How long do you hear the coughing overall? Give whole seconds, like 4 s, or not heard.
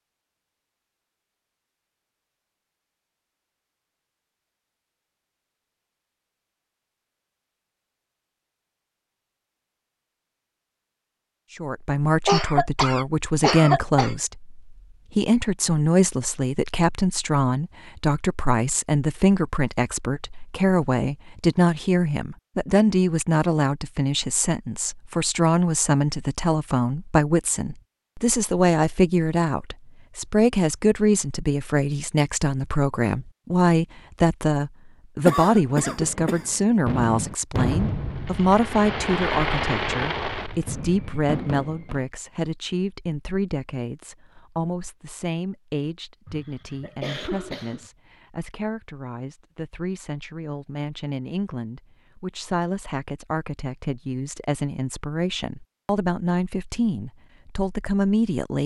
5 s.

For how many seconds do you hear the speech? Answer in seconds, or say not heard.
47 s.